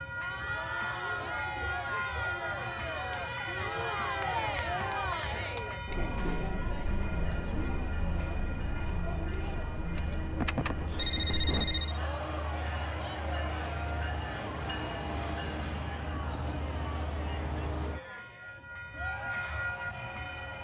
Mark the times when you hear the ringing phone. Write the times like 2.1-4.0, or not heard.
10.3-12.0.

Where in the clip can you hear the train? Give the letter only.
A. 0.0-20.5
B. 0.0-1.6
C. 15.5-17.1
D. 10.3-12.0
A.